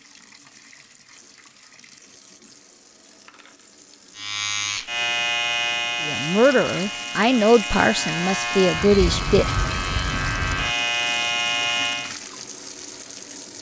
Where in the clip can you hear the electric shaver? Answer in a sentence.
The electric shaver can be heard from 4.2 to 12.2 s.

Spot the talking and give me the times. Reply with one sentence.
You can hear the talking from 6.0 to 9.4 s.